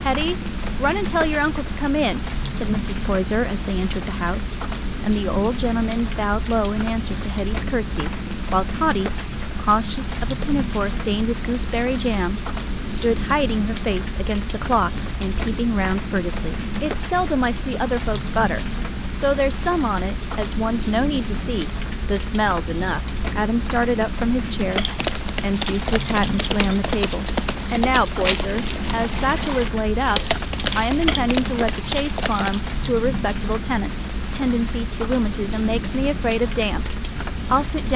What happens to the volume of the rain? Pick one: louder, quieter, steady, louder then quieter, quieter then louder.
steady.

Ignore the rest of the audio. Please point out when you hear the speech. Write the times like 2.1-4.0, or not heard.
0.0-37.9.